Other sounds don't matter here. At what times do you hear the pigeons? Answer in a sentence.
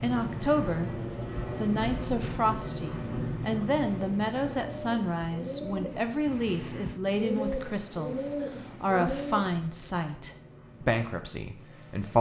The pigeons can be heard from 3.9 to 9.5 s.